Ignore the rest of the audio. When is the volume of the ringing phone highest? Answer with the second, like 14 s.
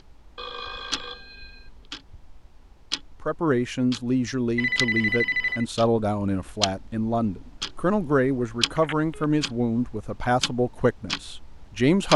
5 s.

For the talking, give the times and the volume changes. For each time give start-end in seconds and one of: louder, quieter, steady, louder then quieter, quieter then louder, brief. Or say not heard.
3.2-12.1 steady.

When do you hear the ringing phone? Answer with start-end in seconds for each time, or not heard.
0.3-1.6, 4.5-5.7, 8.8-9.2.